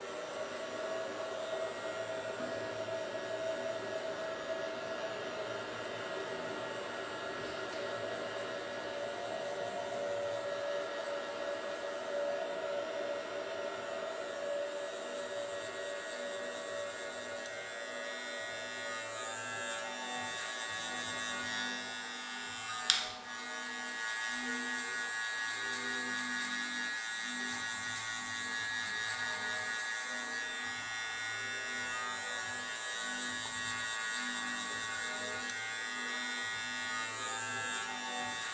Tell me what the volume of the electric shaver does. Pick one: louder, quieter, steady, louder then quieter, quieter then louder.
louder.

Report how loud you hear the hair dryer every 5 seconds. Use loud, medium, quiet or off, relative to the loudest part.
loud, loud, loud, medium, quiet, quiet, quiet, quiet.